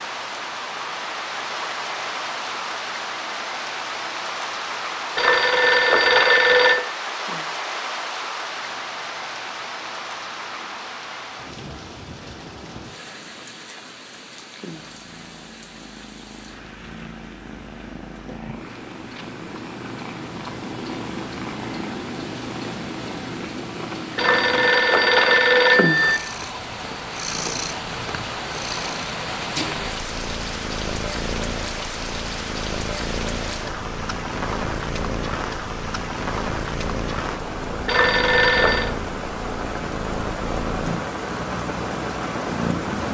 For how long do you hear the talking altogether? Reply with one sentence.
You can't hear the talking here.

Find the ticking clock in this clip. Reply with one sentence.
You can't hear the ticking clock here.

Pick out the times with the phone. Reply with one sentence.
You can hear the phone from 5.2 to 6.8 s, from 24.1 to 26.2 s and from 37.9 to 38.9 s.